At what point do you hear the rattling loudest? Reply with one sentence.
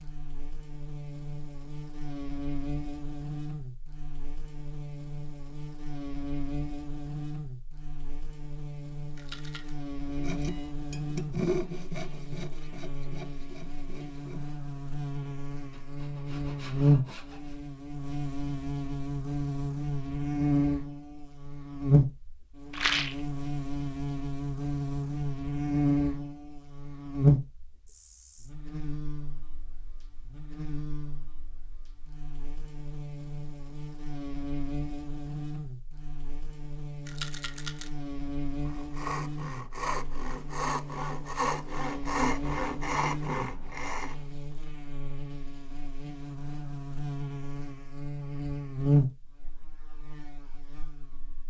The loudest moment of the rattling is at 23 seconds.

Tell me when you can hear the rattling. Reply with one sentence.
The rattling can be heard from 9.2 to 9.8 s, from 22.7 to 23.2 s and from 37.0 to 37.9 s.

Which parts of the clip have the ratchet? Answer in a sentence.
You can't hear the ratchet here.